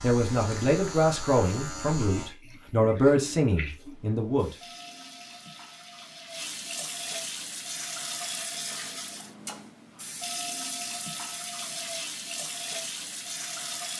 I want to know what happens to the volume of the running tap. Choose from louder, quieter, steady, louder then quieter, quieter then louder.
louder.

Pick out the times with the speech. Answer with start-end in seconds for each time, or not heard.
0.0-4.5.